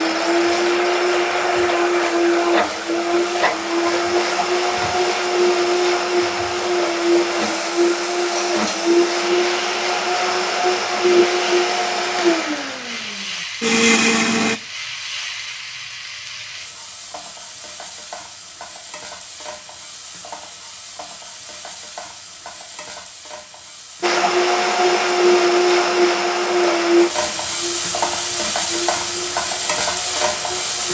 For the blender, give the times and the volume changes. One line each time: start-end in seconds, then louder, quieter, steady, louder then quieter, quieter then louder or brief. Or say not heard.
0.0-14.6 steady
24.0-30.8 quieter.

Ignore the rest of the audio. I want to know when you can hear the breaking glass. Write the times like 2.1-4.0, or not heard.
not heard.